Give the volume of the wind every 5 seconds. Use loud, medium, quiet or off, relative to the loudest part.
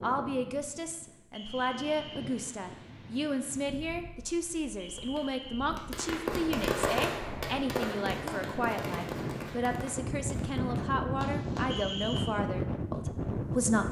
quiet, medium, loud.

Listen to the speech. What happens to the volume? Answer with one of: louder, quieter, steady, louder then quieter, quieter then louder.
steady.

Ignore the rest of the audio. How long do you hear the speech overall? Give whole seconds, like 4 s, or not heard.
14 s.